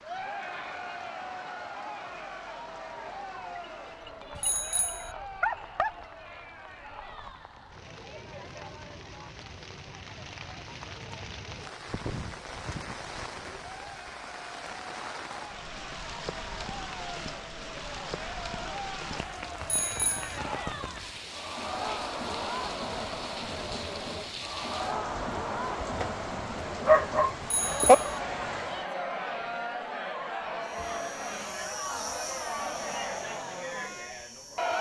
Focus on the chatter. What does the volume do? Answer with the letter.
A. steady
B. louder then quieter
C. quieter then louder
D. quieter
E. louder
C.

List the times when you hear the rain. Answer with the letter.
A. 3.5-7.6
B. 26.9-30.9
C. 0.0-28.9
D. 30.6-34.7
C.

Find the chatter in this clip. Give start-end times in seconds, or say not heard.
0.0-34.7.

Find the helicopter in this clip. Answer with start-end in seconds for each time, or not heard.
30.6-34.7.